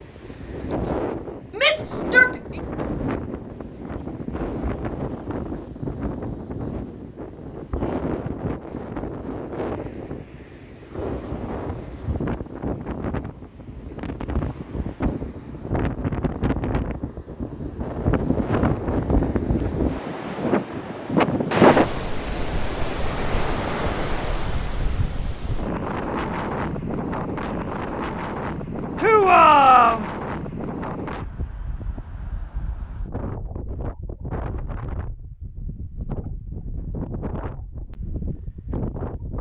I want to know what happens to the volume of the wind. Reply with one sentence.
The loudness of the wind goes up, then down.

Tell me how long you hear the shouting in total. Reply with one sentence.
The shouting can be heard for 2 seconds in total.